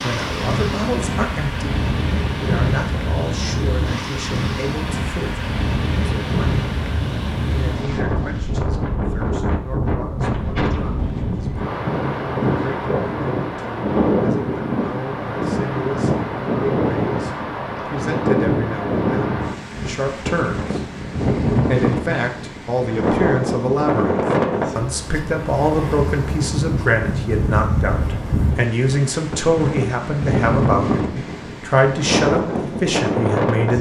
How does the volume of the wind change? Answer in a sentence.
The volume of the wind stays about the same.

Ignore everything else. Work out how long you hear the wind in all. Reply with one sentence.
The wind can be heard for 34 seconds in total.